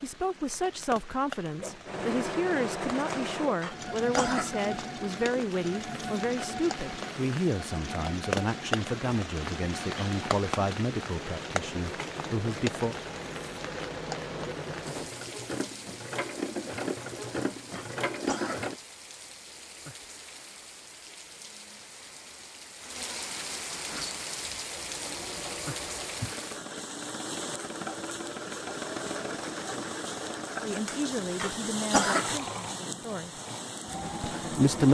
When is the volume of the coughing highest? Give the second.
32 s.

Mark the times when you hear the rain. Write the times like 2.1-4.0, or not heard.
0.0-34.8.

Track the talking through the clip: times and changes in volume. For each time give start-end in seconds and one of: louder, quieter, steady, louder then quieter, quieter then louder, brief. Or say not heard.
0.0-12.9 steady
30.6-33.4 brief
34.2-34.8 brief.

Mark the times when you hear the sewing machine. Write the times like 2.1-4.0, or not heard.
1.6-18.8, 23.9-34.8.